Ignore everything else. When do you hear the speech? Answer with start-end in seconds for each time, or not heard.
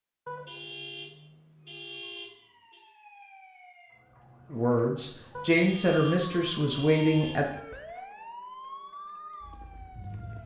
4.5-7.5.